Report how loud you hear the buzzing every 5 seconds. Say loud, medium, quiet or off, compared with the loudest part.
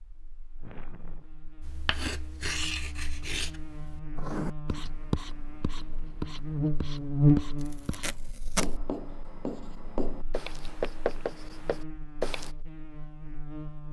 quiet, loud, quiet.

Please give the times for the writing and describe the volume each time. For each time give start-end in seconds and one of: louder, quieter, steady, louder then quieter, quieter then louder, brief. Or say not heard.
1.6-12.5 steady.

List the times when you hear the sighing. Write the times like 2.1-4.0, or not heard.
0.6-1.3.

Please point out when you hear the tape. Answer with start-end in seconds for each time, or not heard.
7.6-8.7.